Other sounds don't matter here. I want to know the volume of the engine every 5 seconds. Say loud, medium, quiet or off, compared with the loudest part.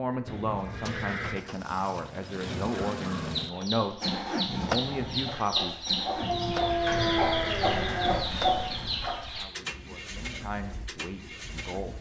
loud, loud, medium.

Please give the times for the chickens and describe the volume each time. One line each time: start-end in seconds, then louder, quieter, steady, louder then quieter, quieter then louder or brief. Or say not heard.
3.3-9.4 louder.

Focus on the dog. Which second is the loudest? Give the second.
7 s.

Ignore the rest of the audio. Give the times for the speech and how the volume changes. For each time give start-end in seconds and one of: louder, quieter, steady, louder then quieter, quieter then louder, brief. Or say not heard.
0.0-5.8 steady
9.4-11.9 brief.